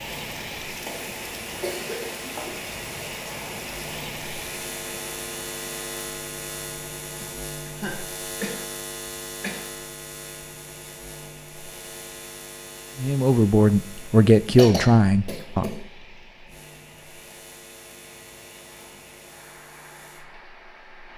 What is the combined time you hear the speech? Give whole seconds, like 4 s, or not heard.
3 s.